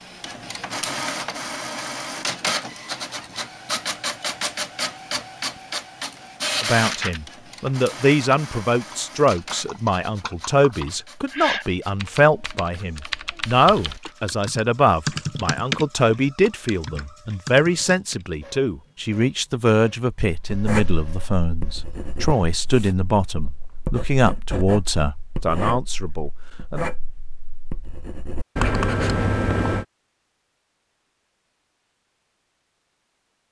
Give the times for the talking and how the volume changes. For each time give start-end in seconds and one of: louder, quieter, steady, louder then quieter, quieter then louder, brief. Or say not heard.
6.6-26.9 steady.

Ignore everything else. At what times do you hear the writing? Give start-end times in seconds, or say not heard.
20.4-29.9.